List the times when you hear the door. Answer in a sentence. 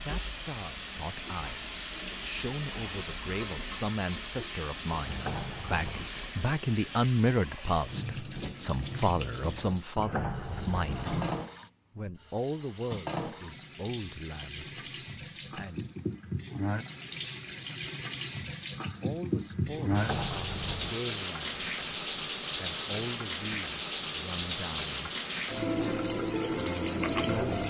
The door can be heard from 5.0 to 6.1 s, from 9.9 to 11.4 s and from 19.9 to 21.0 s.